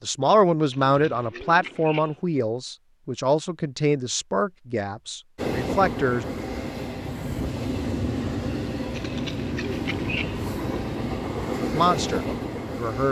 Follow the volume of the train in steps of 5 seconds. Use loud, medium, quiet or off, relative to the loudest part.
off, loud, loud.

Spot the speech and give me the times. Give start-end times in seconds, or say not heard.
0.0-6.2, 11.7-13.0.